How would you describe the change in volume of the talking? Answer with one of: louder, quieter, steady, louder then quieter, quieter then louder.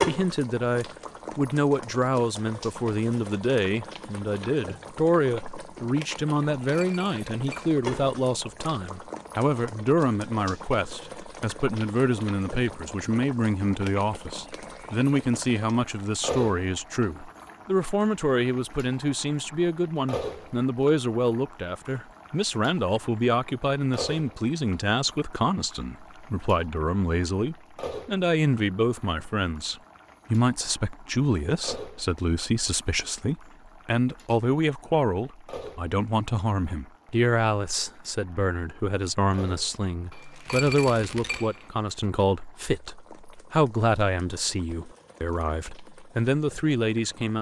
steady.